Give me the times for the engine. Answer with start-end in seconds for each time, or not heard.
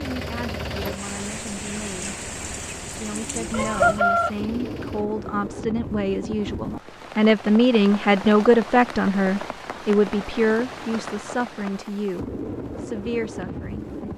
0.0-5.0.